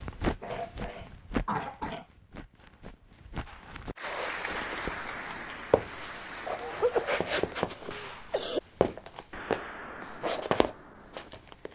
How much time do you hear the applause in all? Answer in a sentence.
The applause can be heard for 4 seconds in total.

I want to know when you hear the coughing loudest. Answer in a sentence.
The loudest moment of the coughing is at 7 seconds.